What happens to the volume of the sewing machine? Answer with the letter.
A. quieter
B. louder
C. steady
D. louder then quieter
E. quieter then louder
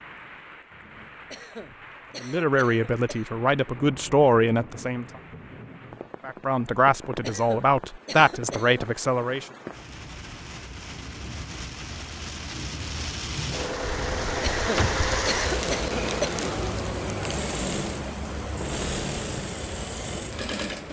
C.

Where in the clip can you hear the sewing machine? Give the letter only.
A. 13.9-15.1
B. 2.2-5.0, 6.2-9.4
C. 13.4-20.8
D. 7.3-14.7
C.